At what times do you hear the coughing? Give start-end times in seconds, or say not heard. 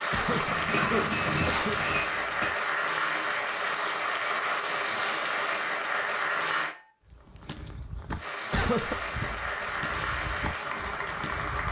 0.1-1.8, 8.5-9.0.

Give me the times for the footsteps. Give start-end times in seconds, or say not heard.
7.0-11.6.